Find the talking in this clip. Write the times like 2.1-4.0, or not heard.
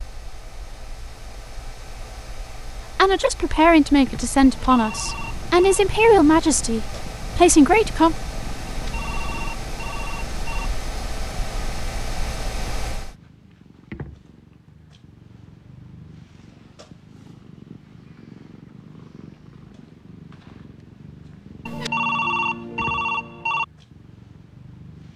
3.0-8.2.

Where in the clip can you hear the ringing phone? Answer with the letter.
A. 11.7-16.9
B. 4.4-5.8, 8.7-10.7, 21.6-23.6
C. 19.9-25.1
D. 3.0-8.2
B.